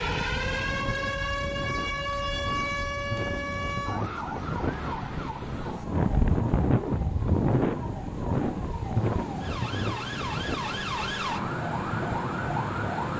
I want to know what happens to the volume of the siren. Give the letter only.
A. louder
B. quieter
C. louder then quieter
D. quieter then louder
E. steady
D.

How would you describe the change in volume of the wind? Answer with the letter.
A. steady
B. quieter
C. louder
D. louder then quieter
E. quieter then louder
D.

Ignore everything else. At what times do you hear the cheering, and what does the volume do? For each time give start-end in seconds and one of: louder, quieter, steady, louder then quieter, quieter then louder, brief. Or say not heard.
not heard.